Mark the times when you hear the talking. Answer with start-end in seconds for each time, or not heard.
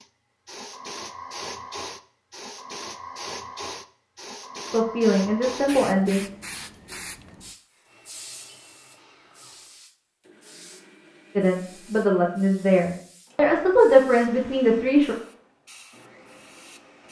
4.7-6.2, 11.3-15.2.